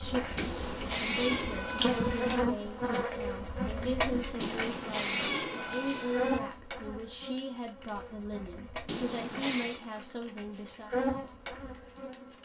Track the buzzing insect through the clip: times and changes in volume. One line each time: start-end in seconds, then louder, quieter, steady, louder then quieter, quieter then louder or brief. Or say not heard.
0.0-12.4 quieter then louder.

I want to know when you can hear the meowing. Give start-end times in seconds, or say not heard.
0.3-2.4, 4.4-6.4, 8.8-9.8.